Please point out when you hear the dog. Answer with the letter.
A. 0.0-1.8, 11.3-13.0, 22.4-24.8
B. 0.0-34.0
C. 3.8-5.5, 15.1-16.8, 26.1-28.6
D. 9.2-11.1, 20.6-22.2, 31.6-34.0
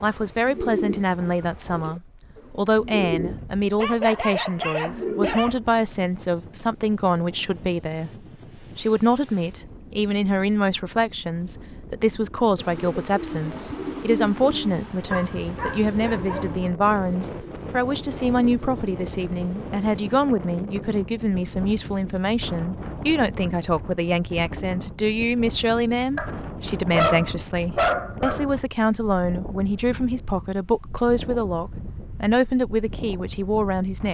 C.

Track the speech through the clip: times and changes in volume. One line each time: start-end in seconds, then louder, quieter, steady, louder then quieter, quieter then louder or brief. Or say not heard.
0.0-34.0 steady.